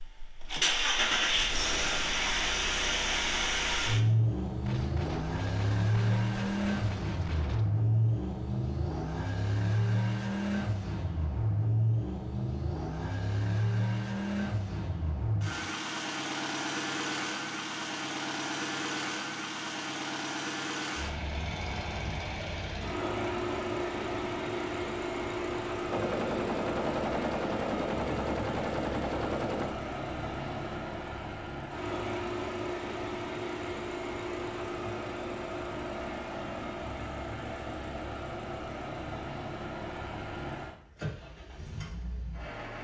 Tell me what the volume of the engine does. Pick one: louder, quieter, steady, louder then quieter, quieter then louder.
quieter.